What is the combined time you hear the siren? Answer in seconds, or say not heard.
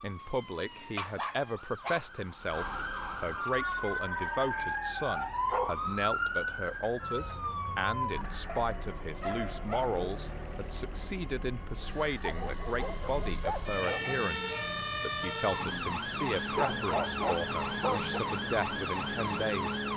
20 s.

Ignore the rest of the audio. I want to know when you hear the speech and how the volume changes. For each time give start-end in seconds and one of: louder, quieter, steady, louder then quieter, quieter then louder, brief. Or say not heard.
0.0-19.9 steady.